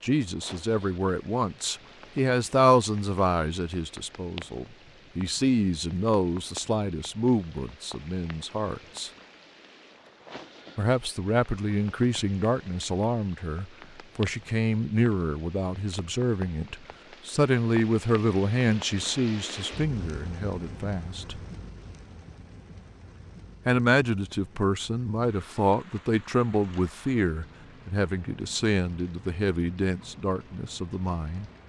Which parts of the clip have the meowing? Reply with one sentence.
The meowing can't be heard in this clip.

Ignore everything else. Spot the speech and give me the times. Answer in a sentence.
The speech can be heard from 0.0 to 9.1 s, from 10.8 to 21.4 s and from 23.6 to 31.5 s.